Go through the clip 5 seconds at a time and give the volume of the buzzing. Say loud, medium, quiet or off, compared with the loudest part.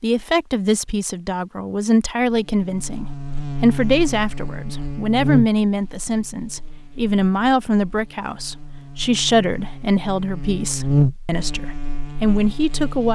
medium, medium, loud.